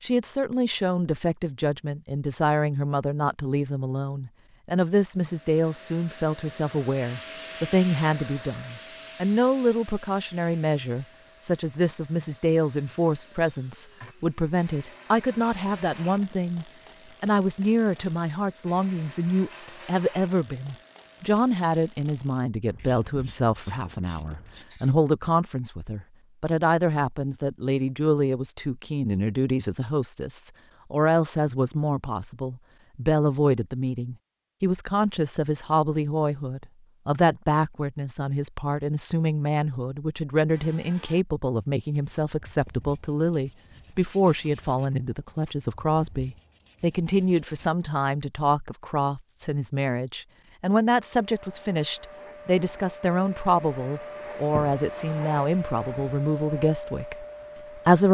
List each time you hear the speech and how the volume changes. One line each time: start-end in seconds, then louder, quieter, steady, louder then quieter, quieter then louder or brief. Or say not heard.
0.0-58.1 steady.